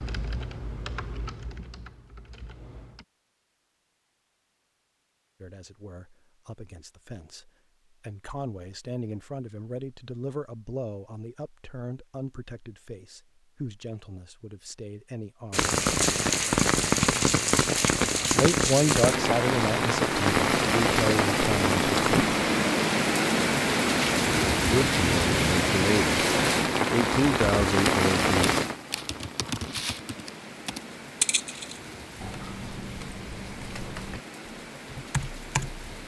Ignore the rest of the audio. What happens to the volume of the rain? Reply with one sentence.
The loudness of the rain goes down.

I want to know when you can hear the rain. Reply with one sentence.
The rain can be heard from 15.5 to 36.0 s.